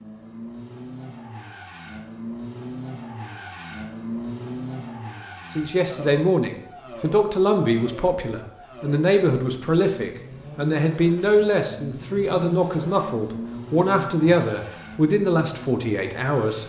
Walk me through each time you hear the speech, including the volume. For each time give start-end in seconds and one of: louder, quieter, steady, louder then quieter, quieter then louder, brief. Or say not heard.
5.5-16.6 steady.